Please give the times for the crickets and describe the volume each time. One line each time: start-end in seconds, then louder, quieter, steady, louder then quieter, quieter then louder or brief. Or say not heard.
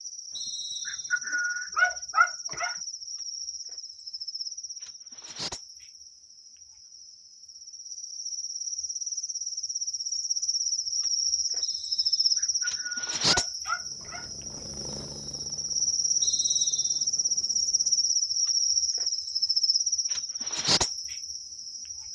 0.0-22.1 louder.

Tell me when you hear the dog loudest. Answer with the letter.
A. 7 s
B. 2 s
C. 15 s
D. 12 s
B.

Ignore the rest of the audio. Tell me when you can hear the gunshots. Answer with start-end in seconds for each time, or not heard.
not heard.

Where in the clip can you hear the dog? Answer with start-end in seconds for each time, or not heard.
0.8-2.8, 12.3-14.2.